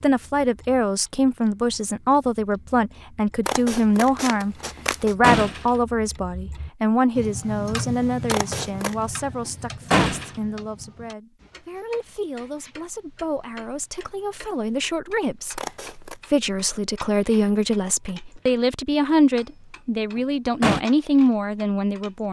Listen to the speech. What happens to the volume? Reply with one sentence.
The volume of the speech goes down, then up.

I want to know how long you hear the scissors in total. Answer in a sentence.
You can hear the scissors for 3 seconds altogether.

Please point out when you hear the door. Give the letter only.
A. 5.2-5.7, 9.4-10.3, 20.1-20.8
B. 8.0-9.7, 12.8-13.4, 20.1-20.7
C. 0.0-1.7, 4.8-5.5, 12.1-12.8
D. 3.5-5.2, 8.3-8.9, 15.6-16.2
A.